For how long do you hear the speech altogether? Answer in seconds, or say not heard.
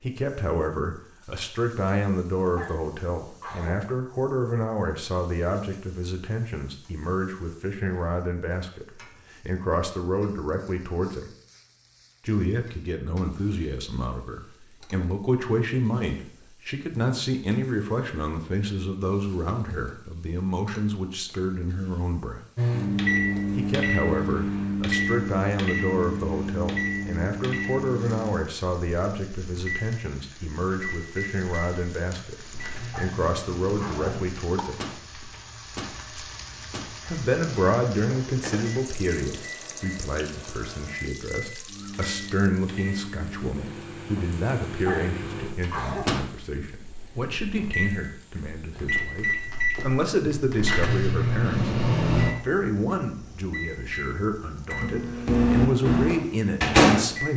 52 s.